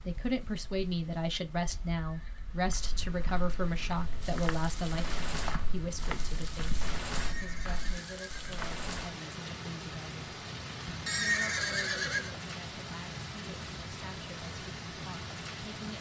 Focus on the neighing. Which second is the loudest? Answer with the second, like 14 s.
11 s.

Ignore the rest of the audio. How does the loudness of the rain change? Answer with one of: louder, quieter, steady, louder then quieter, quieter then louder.
louder.